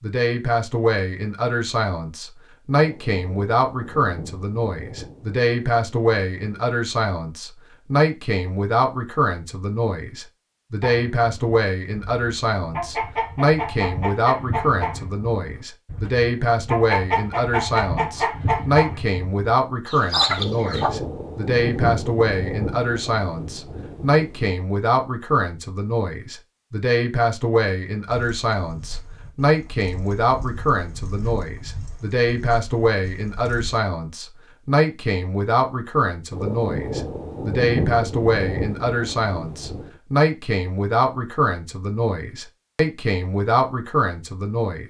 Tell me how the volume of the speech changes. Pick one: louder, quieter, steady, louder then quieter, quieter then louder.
steady.